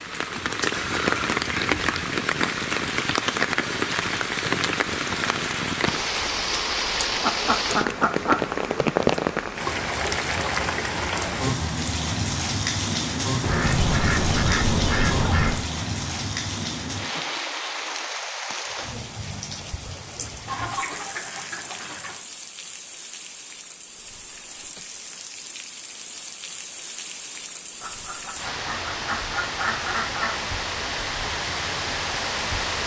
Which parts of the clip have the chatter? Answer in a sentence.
You can't hear the chatter here.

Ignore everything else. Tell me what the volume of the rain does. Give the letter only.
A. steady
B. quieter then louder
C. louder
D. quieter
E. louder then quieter
B.